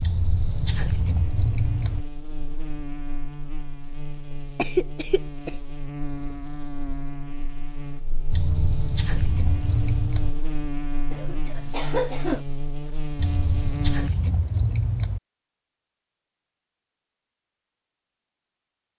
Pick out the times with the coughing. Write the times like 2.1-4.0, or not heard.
4.5-5.5, 11.1-12.4.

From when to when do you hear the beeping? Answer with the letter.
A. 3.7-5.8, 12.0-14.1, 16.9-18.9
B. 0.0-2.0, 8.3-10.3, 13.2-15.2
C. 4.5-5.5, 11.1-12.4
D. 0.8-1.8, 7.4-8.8
B.